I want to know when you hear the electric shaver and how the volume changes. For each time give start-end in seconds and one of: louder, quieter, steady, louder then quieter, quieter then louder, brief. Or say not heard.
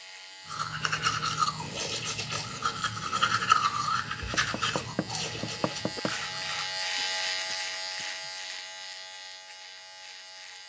0.0-10.6 louder then quieter.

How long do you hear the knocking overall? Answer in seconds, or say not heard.
2 s.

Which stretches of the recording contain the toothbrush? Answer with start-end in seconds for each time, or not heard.
0.5-6.8.